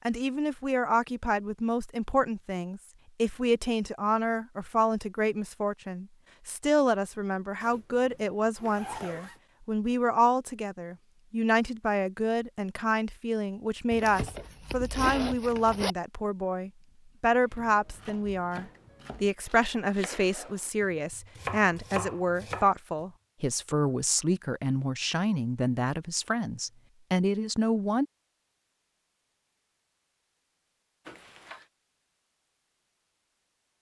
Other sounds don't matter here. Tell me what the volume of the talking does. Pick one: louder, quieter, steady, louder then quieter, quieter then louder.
steady.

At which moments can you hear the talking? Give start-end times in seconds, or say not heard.
0.1-28.1.